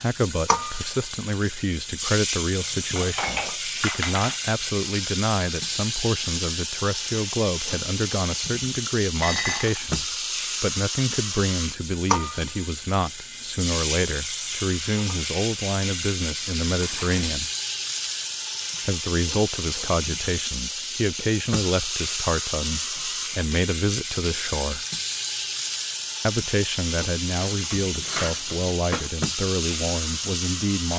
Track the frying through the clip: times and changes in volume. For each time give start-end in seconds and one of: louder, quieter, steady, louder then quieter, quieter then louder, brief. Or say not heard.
0.0-30.9 steady.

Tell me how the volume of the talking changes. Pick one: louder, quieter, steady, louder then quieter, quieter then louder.
steady.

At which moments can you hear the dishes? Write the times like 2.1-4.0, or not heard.
2.9-4.3, 9.2-9.9, 16.8-17.3, 27.4-29.1.